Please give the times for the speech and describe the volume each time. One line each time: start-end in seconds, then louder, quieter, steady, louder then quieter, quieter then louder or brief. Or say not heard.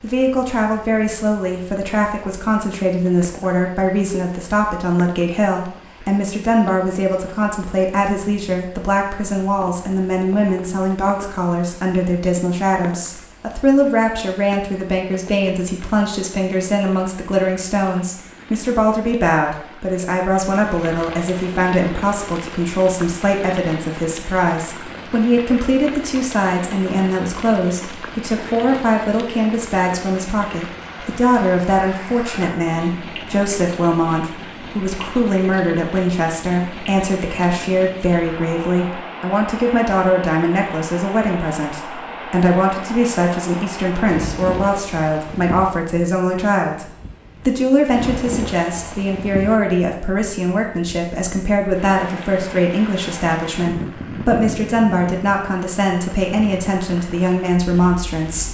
0.0-58.4 steady.